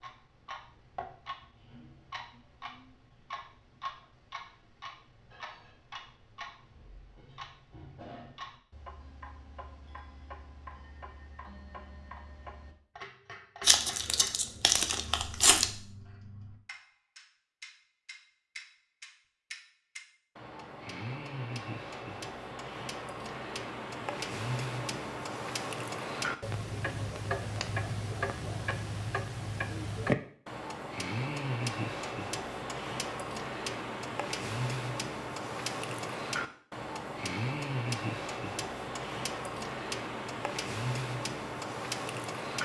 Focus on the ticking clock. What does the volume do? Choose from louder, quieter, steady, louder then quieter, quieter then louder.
louder.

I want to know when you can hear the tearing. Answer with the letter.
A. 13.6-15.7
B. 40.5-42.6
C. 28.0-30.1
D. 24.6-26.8
A.